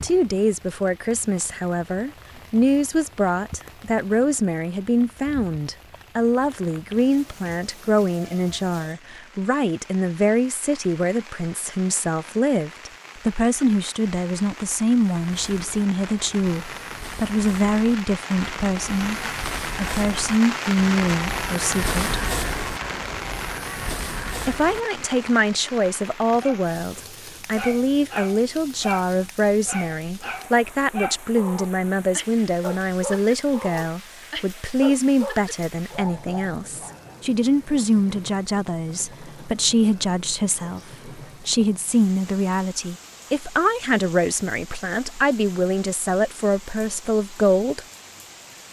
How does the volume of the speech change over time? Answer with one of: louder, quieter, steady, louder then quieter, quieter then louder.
steady.